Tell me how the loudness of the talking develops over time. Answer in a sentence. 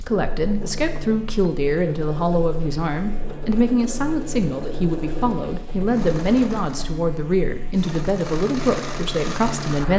The loudness of the talking stays about the same.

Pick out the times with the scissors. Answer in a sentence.
The scissors can't be heard in this clip.